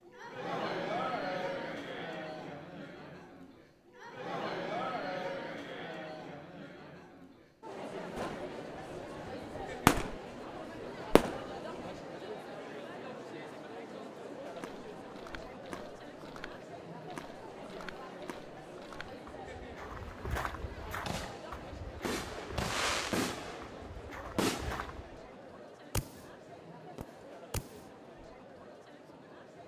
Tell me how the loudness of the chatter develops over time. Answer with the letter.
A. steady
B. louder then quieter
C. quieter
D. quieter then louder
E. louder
C.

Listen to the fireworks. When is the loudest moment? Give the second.
10 s.